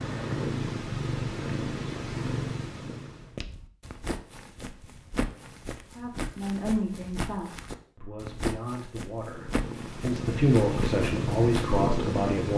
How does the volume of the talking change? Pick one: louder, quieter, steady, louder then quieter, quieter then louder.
quieter then louder.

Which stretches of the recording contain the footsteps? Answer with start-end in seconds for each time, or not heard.
3.1-11.8.